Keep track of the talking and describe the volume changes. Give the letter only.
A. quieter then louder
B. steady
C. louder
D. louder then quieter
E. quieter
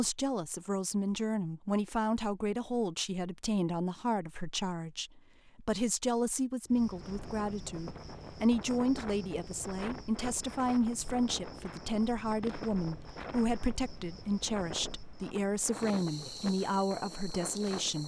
B.